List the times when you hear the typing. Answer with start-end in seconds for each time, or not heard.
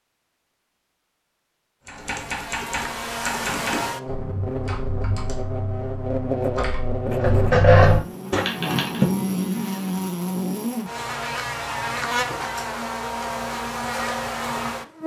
1.9-9.1.